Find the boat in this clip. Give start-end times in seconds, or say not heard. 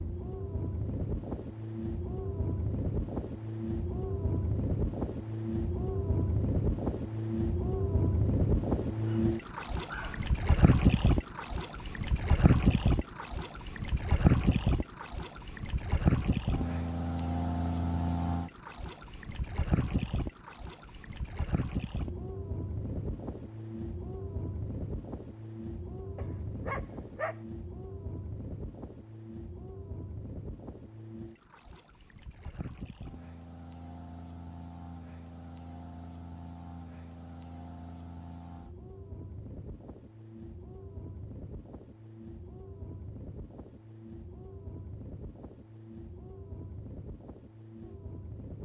0.0-48.6.